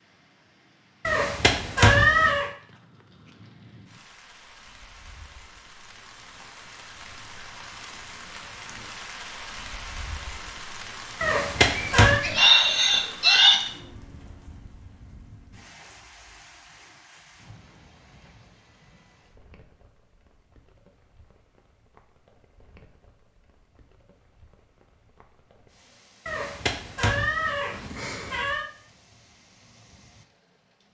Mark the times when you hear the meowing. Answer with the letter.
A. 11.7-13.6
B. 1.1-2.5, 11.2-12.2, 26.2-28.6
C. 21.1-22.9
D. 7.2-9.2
B.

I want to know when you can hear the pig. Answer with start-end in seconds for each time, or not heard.
11.7-13.6.